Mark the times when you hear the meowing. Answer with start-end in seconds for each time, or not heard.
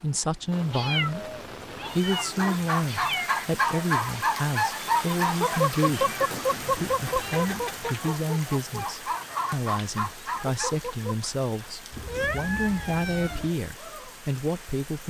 0.7-3.3, 5.8-7.9, 12.1-13.5.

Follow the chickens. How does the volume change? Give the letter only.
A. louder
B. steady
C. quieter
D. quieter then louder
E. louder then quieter
C.